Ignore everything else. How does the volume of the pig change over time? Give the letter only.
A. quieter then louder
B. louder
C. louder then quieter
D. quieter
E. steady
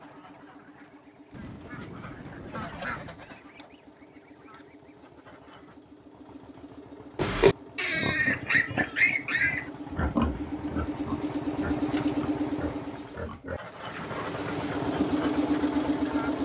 D.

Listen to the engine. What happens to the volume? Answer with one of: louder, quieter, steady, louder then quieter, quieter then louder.
louder.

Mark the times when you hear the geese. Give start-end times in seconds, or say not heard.
0.0-5.8, 13.4-16.3.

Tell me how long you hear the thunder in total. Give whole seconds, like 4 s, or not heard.
2 s.